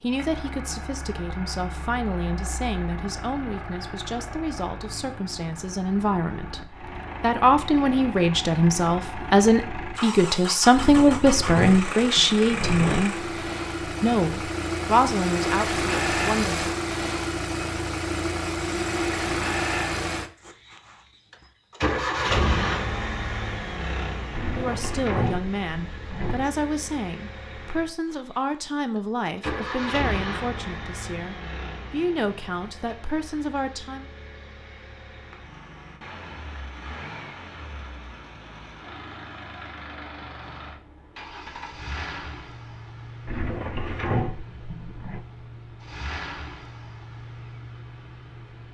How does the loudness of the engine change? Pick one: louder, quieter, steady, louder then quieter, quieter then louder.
louder then quieter.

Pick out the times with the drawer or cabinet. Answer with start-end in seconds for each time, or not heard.
10.7-13.1, 24.3-26.5, 43.2-45.2.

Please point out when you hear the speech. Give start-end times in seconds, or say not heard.
0.0-13.2, 14.0-16.6, 24.6-34.0.